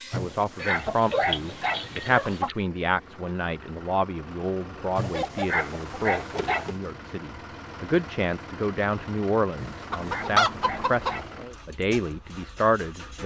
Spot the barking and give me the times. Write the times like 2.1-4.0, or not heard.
0.1-2.5, 5.0-6.8, 9.6-11.3.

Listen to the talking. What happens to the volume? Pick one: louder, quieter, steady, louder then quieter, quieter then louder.
quieter then louder.